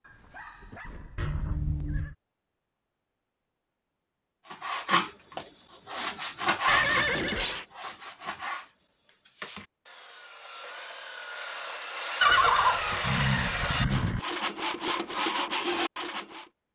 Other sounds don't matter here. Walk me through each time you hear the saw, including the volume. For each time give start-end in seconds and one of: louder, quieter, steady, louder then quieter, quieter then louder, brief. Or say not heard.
4.5-16.4 quieter then louder.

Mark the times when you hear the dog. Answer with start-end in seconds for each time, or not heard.
0.0-1.6.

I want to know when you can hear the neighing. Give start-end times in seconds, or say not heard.
1.1-2.1, 6.7-7.7, 12.2-14.2.